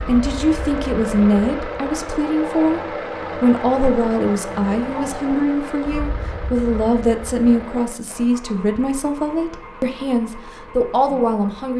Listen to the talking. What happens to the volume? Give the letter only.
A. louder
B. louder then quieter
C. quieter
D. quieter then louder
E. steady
E.